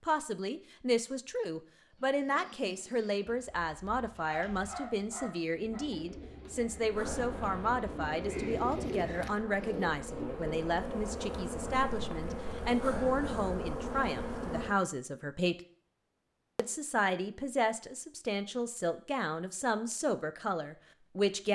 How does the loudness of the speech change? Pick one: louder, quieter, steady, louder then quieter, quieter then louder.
steady.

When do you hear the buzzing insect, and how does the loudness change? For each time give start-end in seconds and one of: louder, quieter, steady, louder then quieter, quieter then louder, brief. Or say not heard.
6.9-14.8 louder.